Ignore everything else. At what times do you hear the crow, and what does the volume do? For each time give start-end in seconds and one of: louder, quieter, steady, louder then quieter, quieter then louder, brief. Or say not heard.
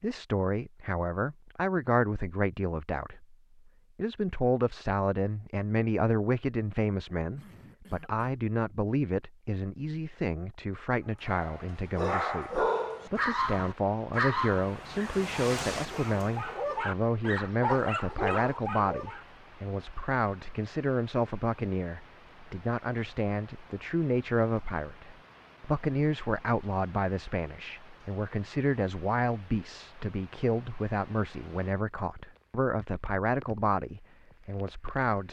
not heard.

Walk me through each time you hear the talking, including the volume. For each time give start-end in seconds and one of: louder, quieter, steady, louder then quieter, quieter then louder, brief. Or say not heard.
0.0-35.2 steady.